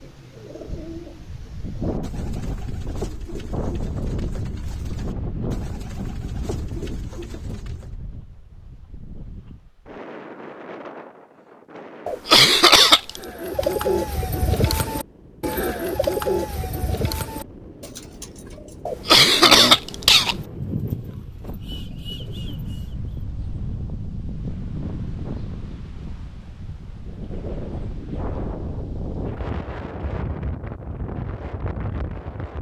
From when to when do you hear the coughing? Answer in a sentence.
The coughing can be heard from 12.1 to 13.2 s and from 18.9 to 20.4 s.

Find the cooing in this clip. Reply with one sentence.
You can hear the cooing from 0.0 to 7.9 s and from 13.2 to 22.9 s.